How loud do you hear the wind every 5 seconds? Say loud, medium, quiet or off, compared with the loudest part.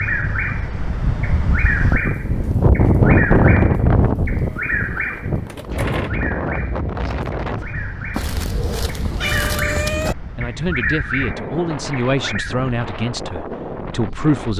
loud, medium, quiet.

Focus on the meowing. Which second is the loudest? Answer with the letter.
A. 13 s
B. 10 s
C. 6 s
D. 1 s
B.